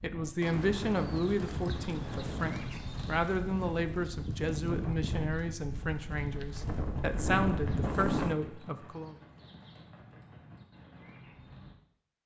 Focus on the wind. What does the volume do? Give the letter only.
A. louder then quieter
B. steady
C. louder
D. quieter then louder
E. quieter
C.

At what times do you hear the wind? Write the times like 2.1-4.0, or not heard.
0.0-8.3.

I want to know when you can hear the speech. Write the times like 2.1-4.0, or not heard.
0.0-9.2.